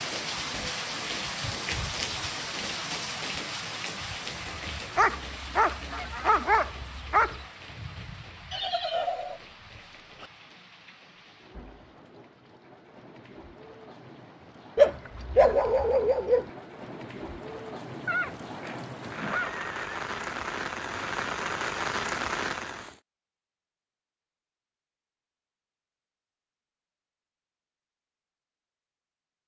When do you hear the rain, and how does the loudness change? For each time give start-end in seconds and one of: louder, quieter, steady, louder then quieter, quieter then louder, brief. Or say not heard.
0.0-22.9 quieter then louder.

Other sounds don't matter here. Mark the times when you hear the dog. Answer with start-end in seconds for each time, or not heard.
5.0-7.5, 14.8-16.5.